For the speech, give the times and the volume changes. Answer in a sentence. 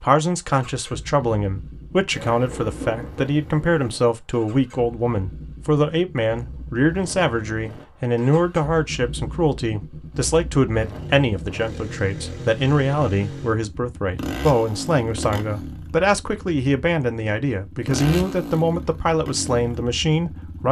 You can hear the speech from 0.0 to 20.6 s, at a steady volume.